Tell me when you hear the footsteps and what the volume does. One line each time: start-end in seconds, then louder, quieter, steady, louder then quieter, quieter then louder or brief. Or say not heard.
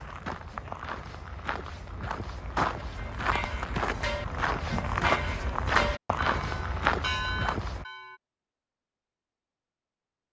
0.0-7.8 louder.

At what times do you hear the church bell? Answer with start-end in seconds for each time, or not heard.
2.8-8.2.